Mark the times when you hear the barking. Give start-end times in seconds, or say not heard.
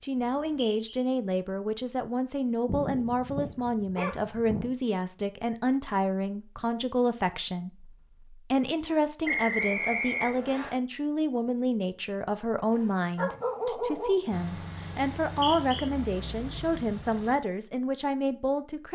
2.6-4.7, 12.7-14.2.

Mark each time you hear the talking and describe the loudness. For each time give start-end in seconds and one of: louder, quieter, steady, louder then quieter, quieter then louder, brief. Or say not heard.
0.0-18.9 steady.